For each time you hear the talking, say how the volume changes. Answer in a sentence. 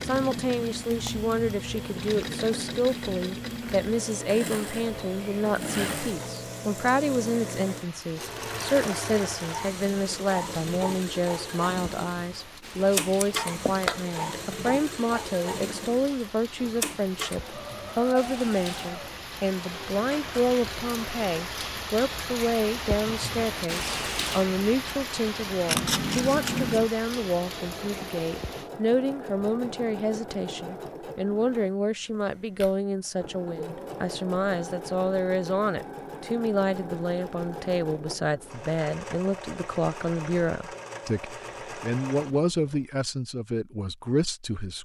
The talking can be heard from 0.1 to 44.8 s, at a steady volume.